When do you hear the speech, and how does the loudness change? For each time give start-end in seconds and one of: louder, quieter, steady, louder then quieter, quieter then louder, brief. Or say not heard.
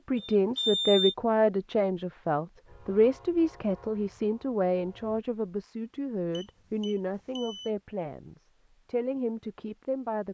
0.1-10.2 quieter.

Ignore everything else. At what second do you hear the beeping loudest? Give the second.
1 s.